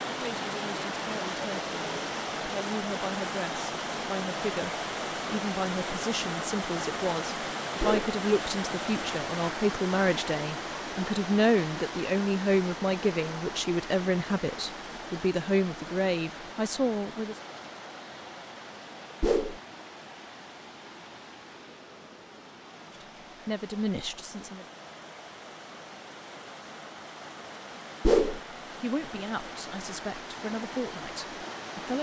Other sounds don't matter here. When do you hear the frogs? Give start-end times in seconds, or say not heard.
not heard.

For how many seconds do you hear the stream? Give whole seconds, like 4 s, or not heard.
32 s.